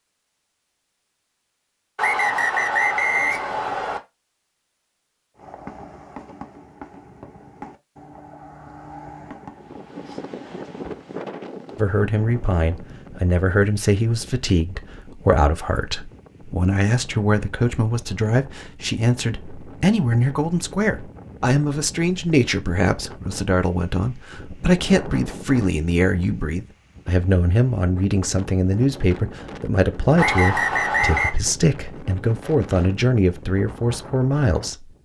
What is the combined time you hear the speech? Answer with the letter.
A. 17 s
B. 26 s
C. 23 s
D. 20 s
C.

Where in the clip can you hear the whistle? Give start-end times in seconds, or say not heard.
1.9-4.0, 30.1-31.4.